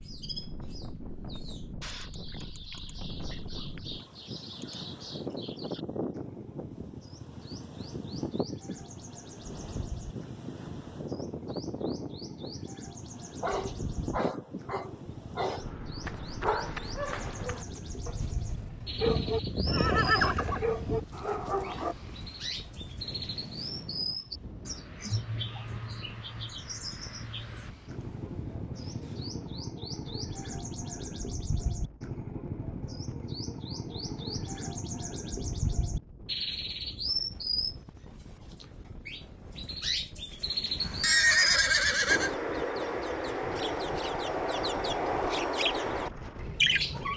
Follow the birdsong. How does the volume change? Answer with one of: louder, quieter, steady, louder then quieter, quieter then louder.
louder.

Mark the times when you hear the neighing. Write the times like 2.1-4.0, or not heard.
19.1-21.1, 40.8-42.3.